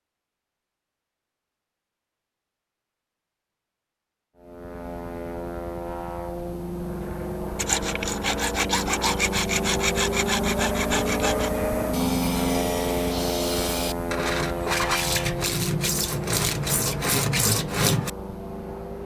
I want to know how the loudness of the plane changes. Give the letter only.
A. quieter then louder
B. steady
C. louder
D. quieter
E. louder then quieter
E.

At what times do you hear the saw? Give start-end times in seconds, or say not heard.
7.5-18.1.